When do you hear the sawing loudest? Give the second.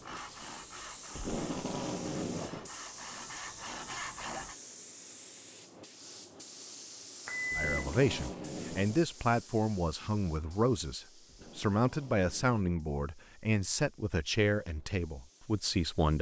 4 s.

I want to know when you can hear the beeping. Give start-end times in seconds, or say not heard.
7.2-8.1.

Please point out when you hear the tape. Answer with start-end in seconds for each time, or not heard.
1.1-2.7, 7.5-9.1, 11.2-12.6.